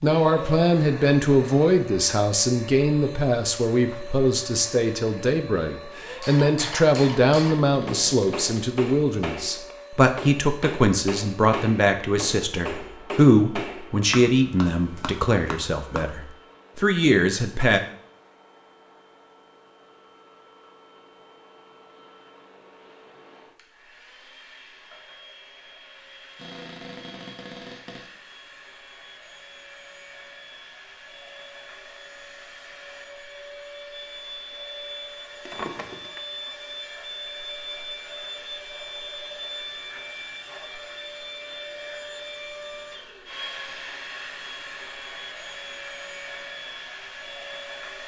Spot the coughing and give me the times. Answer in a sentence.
The coughing can't be heard in this clip.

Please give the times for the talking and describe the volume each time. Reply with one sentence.
The talking can be heard from 0.0 to 17.8 s, at a steady volume.